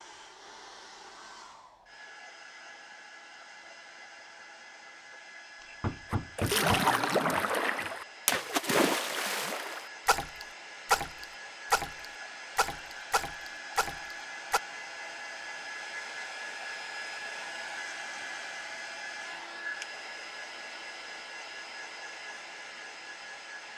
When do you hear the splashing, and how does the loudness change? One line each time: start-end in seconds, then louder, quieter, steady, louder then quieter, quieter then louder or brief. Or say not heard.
6.1-14.6 quieter.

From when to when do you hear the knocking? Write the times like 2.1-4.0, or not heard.
5.6-6.9.